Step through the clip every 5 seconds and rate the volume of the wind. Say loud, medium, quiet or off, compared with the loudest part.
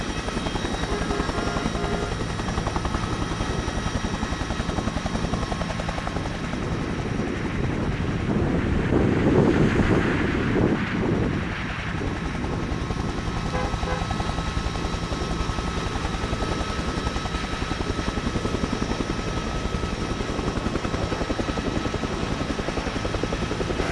medium, loud, loud, medium, medium.